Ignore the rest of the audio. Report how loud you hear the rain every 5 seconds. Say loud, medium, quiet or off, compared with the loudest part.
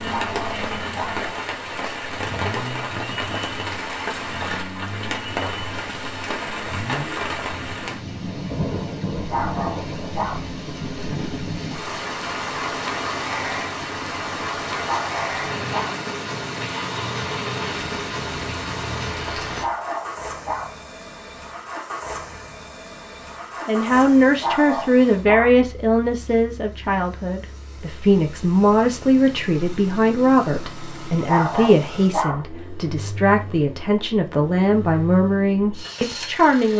loud, loud, loud, loud, off, off, off, off.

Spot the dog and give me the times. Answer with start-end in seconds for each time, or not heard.
0.1-1.2, 9.3-10.4, 14.8-16.0, 19.6-20.8, 24.4-25.6, 31.2-32.5.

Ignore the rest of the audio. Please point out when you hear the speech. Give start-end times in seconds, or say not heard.
23.6-36.7.